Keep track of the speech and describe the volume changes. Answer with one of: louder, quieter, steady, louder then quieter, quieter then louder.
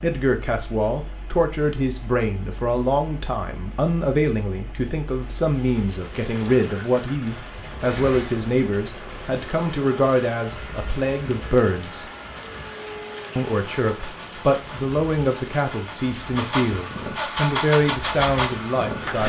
steady.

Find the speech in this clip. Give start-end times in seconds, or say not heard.
0.0-12.1, 13.3-19.2.